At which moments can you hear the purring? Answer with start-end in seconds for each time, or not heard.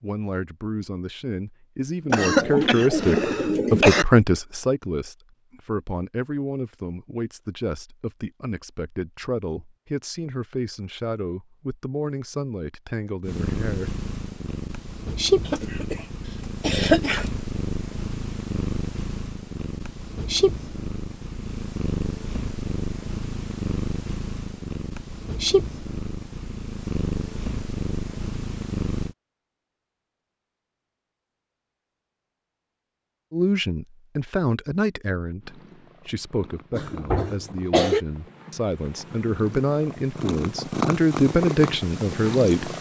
13.2-29.1, 35.4-42.7.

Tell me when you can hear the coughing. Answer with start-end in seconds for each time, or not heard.
2.1-4.0, 15.4-17.3, 36.7-38.0.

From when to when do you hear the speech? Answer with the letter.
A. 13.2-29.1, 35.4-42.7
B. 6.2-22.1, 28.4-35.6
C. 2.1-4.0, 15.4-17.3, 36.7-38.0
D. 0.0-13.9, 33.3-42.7
D.